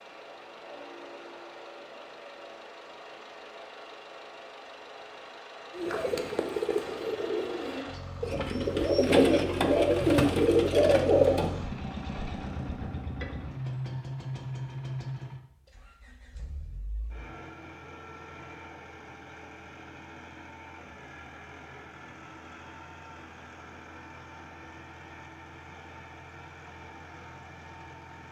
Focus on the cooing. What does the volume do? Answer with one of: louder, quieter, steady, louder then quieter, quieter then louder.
louder.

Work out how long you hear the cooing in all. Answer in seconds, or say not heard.
6 s.